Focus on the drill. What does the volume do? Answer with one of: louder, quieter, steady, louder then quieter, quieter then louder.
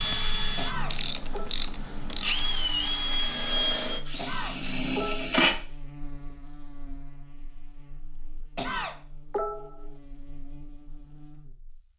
louder.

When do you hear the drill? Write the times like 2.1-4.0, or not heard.
0.0-5.6.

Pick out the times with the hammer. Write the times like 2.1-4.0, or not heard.
not heard.